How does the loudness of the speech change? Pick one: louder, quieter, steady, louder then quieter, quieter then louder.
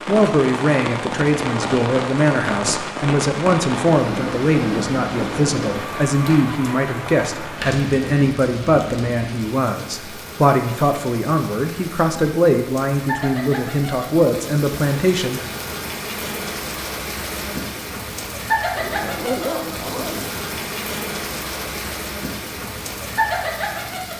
steady.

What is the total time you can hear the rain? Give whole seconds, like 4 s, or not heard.
24 s.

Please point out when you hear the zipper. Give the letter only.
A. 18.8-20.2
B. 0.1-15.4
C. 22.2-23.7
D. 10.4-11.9
A.